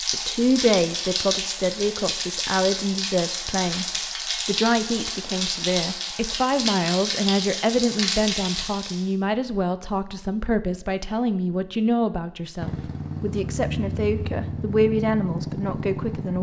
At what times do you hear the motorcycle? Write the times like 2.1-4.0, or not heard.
12.6-16.3.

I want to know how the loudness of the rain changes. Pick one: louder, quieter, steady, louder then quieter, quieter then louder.
steady.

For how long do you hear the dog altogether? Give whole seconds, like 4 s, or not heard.
not heard.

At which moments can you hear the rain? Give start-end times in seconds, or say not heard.
0.0-9.1.